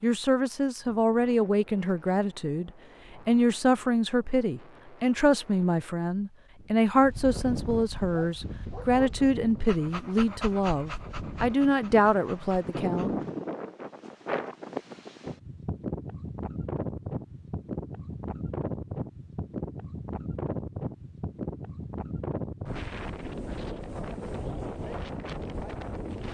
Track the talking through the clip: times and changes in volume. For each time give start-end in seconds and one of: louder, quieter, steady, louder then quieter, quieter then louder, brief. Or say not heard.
0.0-13.1 steady.